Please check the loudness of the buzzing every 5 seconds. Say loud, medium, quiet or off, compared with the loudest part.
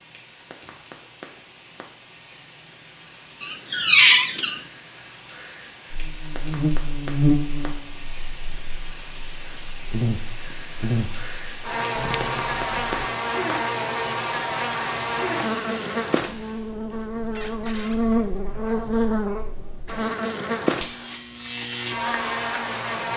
off, loud, loud, loud, loud.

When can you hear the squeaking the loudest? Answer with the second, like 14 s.
4 s.